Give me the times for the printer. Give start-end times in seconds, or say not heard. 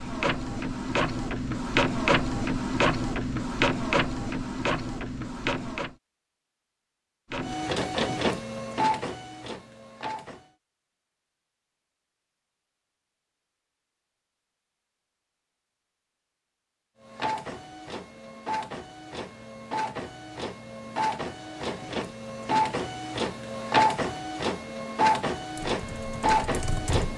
0.0-6.0, 7.3-10.5, 17.0-27.1.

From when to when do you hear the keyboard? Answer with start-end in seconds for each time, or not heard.
25.6-27.1.